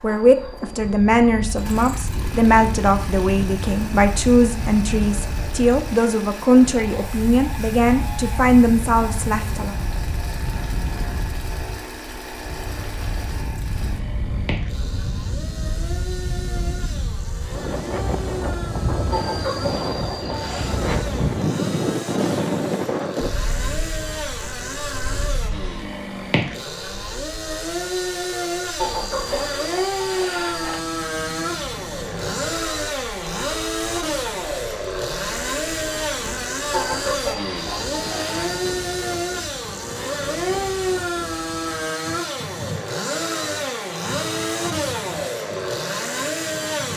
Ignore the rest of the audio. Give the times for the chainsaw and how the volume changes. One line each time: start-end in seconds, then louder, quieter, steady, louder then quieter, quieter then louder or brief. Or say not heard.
0.0-46.9 louder.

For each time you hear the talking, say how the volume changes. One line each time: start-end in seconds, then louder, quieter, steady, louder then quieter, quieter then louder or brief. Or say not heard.
0.0-9.8 steady.